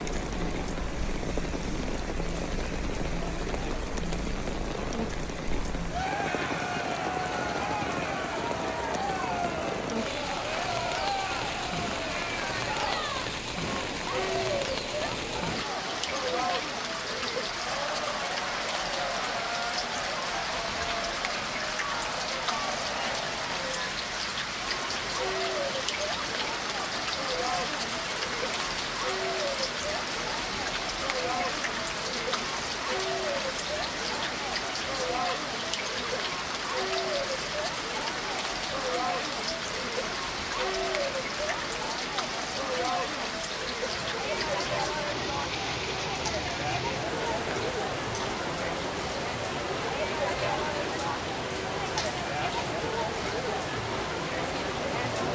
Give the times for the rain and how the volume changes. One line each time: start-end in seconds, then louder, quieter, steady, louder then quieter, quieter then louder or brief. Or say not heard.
0.0-55.2 steady.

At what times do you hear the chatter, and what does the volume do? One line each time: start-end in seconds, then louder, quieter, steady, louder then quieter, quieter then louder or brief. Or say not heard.
0.0-55.2 steady.